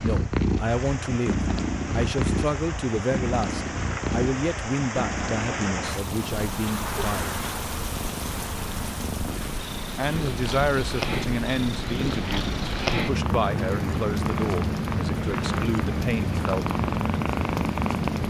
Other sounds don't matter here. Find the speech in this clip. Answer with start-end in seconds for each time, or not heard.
0.0-7.3, 9.9-16.6.